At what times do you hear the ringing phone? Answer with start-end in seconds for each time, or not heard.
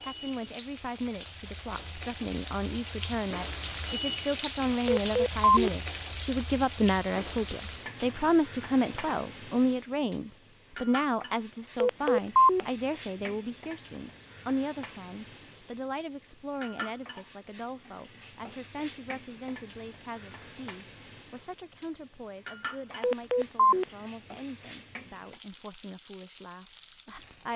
4.8-5.7, 11.8-12.6, 23.0-23.9.